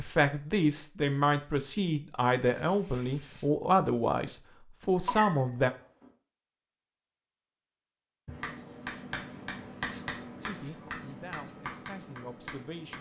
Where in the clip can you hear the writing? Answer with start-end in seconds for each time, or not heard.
8.2-12.9.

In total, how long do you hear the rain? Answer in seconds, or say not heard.
not heard.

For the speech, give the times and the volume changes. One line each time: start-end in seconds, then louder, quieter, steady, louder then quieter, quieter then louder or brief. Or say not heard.
0.0-5.7 steady
10.4-12.9 brief.